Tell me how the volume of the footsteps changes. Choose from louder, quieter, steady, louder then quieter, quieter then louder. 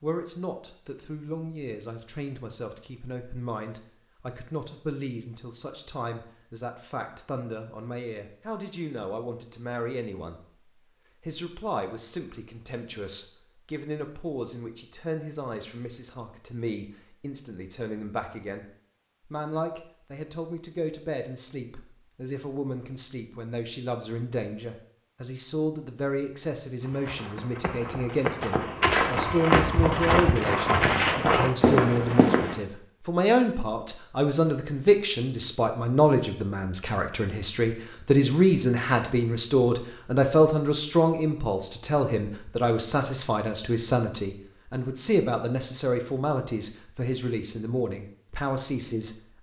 louder.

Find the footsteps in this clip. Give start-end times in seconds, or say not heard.
26.8-32.6.